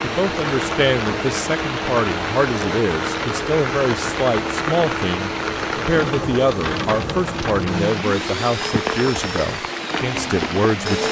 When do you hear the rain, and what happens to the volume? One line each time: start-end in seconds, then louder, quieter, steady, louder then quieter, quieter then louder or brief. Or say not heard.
0.0-11.0 steady.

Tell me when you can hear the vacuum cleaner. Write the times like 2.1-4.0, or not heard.
0.0-11.0.